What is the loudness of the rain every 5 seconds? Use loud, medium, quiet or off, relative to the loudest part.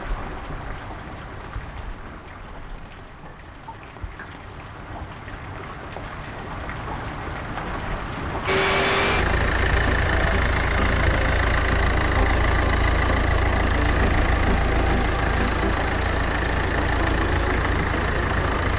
medium, loud, loud, loud.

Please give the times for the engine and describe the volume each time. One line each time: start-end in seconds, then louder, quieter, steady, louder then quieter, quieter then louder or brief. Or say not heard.
8.4-18.7 steady.